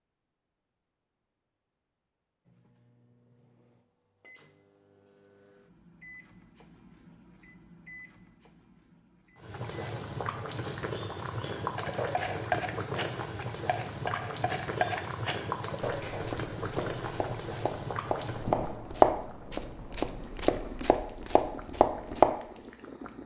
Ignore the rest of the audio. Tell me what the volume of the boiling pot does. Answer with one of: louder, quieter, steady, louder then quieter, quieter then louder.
quieter.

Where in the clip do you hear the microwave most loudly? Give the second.
8 s.